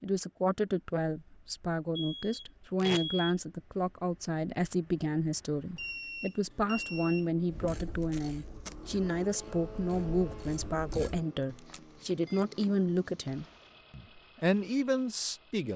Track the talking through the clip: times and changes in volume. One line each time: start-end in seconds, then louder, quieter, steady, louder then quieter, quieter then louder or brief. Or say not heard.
0.0-15.7 steady.